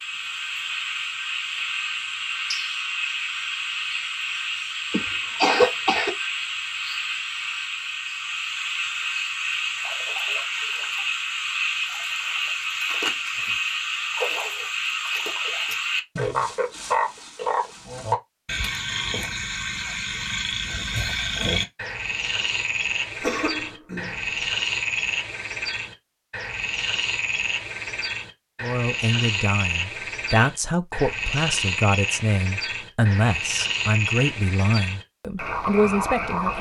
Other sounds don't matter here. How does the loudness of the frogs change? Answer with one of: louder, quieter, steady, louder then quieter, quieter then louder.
steady.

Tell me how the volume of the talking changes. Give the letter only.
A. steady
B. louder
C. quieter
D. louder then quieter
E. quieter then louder
A.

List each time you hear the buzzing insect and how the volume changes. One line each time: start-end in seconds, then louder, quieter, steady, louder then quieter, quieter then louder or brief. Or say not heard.
not heard.